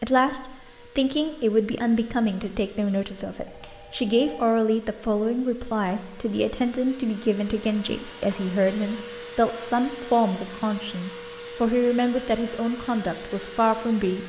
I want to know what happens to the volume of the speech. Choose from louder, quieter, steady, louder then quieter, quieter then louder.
steady.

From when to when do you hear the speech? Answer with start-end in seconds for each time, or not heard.
0.0-14.2.